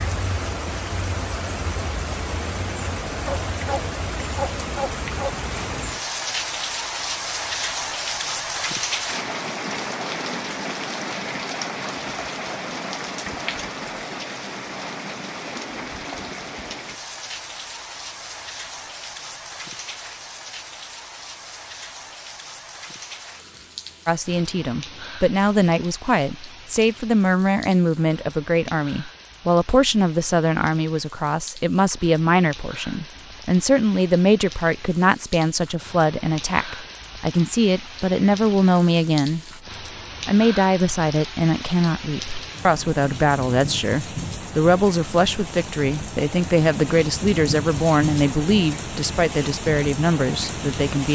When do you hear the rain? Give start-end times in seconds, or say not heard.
0.0-51.1.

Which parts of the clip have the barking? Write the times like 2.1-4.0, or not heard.
3.2-5.5.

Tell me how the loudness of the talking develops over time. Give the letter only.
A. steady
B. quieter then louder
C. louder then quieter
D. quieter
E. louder
A.